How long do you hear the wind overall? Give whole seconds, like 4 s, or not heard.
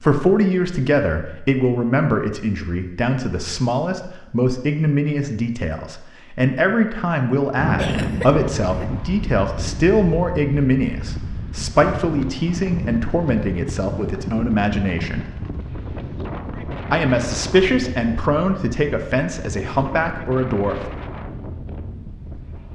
15 s.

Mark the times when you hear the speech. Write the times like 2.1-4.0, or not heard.
0.0-15.2, 16.9-20.9.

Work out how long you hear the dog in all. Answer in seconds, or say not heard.
not heard.